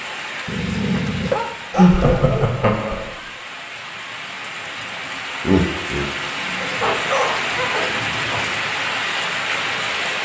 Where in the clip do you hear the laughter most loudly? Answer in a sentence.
The volume of the laughter peaks at 2 seconds.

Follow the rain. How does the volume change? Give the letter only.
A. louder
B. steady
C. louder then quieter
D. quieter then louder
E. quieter
A.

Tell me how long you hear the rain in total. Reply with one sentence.
You can hear the rain for 10 seconds altogether.